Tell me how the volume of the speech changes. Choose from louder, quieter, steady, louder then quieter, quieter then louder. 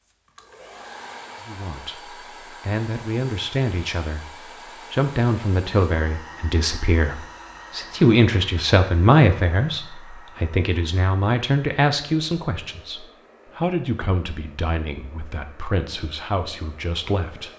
louder then quieter.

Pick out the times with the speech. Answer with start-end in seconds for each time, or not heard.
1.4-17.5.